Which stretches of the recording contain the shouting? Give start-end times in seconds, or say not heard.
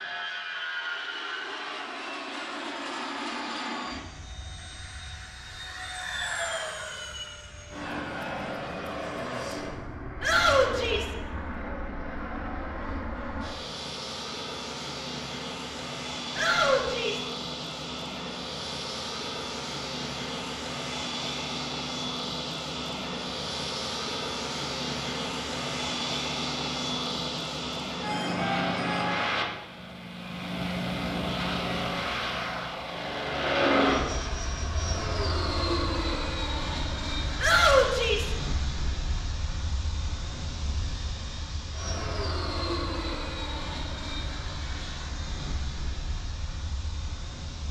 10.2-11.2, 16.4-17.3, 37.4-38.4.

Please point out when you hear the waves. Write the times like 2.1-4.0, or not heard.
not heard.